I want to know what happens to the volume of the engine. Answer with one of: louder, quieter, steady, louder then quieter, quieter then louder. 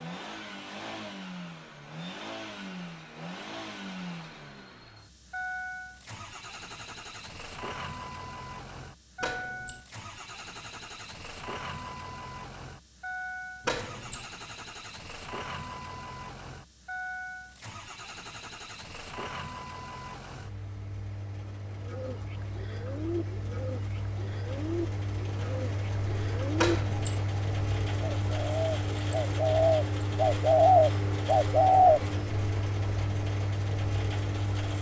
louder.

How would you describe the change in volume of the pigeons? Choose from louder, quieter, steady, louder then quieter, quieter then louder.
louder.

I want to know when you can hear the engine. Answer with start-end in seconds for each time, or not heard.
0.0-34.7.